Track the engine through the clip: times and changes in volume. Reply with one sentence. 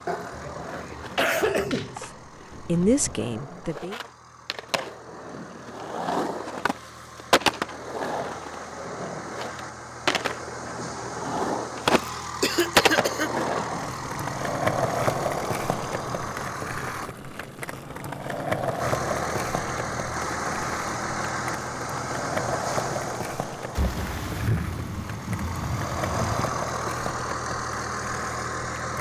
The engine can be heard from 0.0 to 17.1 s, getting louder; and from 18.8 to 28.9 s, getting quieter then louder.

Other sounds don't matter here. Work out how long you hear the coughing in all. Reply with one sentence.
You can hear the coughing for 4 seconds altogether.